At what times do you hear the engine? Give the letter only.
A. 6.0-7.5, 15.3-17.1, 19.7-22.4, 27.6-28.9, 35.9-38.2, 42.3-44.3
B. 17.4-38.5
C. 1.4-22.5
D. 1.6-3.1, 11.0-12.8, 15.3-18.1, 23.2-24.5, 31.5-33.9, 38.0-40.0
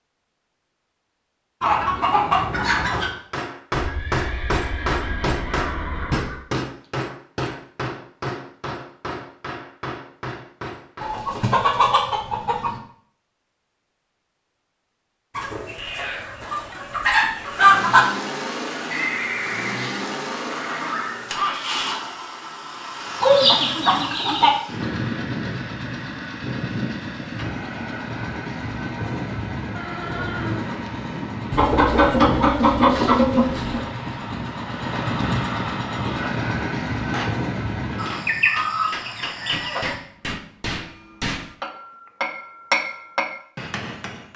B.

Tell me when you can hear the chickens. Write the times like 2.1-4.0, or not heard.
1.6-3.1, 11.0-12.8, 15.3-18.1, 23.2-24.5, 31.5-33.9, 38.0-40.0.